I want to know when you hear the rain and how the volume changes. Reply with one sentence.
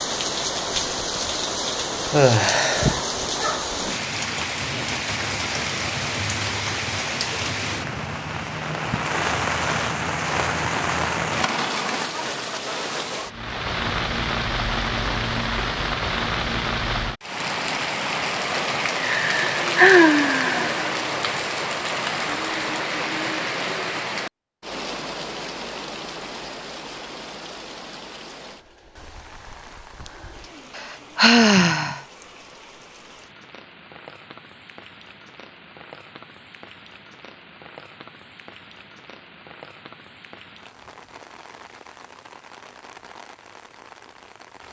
You can hear the rain from 0.0 to 44.6 s, getting quieter.